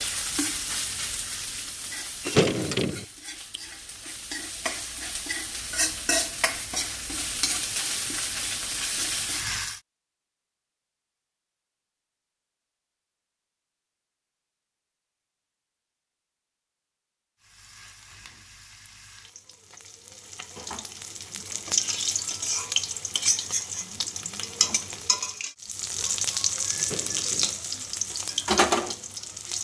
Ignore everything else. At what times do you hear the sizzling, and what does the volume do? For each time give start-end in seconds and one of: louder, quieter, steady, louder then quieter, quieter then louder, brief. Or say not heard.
0.0-9.8 quieter then louder
17.4-29.6 louder.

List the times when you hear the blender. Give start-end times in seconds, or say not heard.
not heard.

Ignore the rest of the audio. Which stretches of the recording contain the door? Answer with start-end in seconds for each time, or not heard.
2.2-3.0, 26.8-27.6.